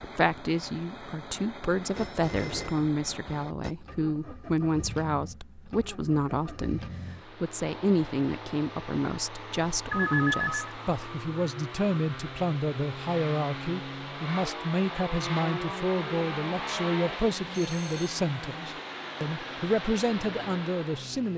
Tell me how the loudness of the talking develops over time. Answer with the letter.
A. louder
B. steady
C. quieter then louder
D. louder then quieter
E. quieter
B.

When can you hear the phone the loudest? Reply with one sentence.
The loudest moment of the phone is at 10 seconds.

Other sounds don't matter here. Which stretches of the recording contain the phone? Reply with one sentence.
You can hear the phone from 1.9 to 3.8 s, from 9.9 to 10.8 s and from 17.4 to 18.2 s.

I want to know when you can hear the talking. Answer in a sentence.
The talking can be heard from 0.0 to 21.3 s.